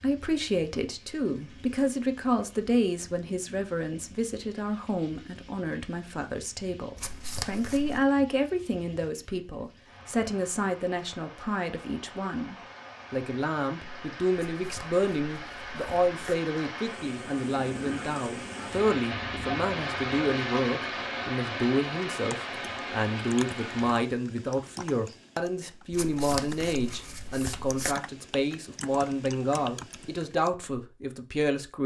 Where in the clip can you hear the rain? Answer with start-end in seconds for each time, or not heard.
0.0-23.9.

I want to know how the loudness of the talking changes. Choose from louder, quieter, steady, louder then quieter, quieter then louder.
steady.